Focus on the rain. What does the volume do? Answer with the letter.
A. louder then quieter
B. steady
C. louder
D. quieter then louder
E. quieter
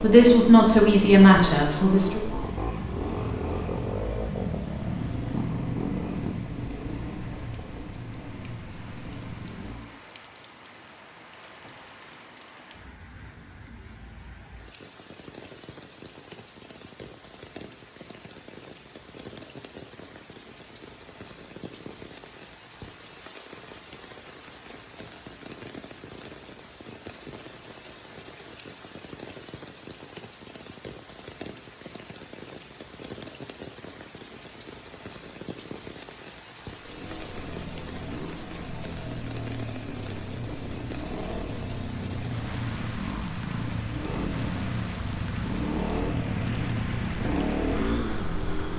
C.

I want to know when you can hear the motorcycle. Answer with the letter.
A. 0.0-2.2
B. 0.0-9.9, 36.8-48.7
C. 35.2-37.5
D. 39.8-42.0
B.